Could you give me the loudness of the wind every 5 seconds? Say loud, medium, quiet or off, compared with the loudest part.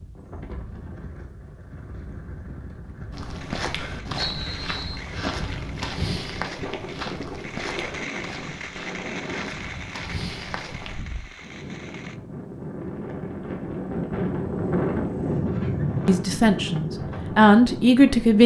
quiet, medium, loud, loud.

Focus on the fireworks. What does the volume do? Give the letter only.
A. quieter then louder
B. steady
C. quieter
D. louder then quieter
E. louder
D.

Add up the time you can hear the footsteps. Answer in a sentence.
The footsteps can be heard for 8 seconds in total.